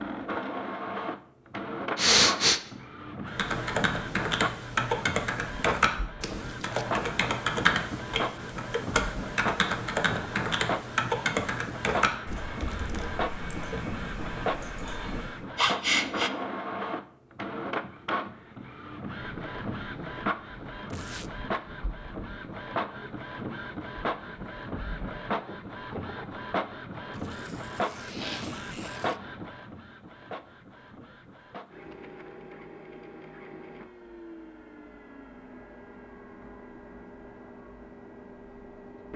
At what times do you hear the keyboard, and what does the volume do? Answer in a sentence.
You can hear the keyboard from 3.2 to 15.4 s, getting quieter.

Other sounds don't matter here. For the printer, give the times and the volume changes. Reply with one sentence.
The printer can be heard from 0.0 to 39.1 s, getting quieter.